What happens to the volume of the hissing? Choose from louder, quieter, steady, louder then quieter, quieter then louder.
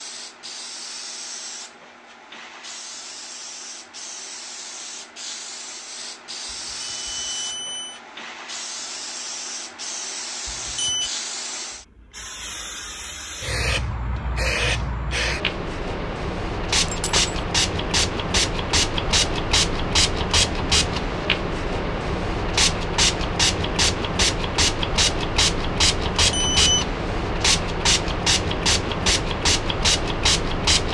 louder.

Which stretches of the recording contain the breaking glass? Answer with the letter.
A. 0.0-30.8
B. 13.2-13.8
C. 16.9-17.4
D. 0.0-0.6
C.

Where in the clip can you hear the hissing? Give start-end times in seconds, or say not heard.
0.0-30.8.